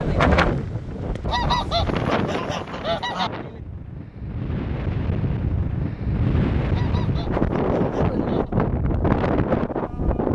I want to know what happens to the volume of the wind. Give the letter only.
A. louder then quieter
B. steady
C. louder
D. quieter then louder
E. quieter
D.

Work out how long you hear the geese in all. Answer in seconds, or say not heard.
4 s.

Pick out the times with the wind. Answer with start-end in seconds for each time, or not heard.
0.0-10.3.